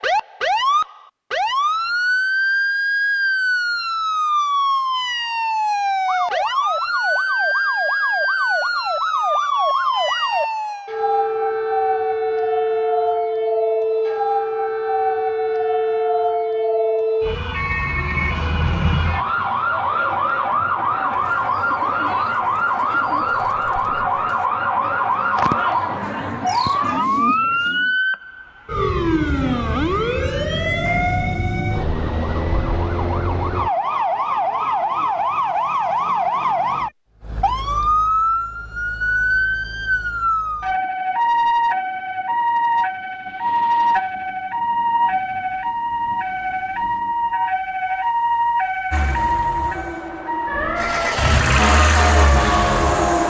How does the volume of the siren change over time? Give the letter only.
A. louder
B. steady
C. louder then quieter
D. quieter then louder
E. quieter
B.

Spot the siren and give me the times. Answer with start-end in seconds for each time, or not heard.
0.0-53.2.